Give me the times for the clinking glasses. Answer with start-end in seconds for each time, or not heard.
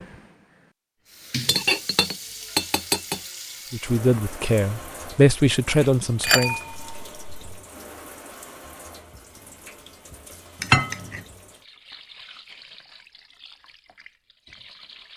1.4-3.2, 6.2-7.6, 10.6-11.2.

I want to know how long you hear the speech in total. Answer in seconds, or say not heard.
3 s.